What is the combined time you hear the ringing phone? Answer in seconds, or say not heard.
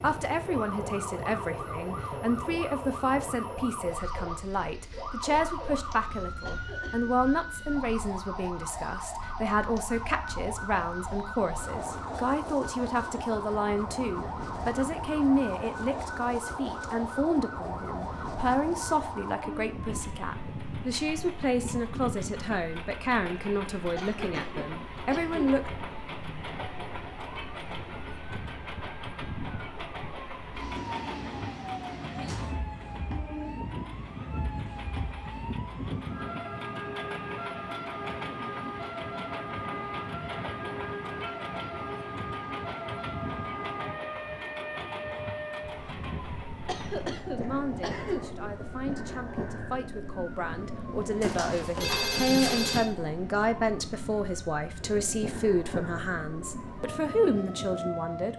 2 s.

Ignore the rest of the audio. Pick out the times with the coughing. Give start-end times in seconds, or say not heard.
6.5-7.2, 23.9-25.6, 46.6-48.2.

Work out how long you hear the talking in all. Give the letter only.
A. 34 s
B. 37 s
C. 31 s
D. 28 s
B.